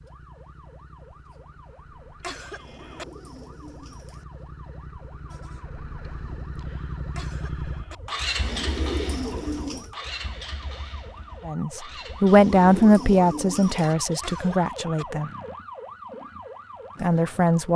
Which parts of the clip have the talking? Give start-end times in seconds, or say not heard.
11.4-15.3, 17.0-17.7.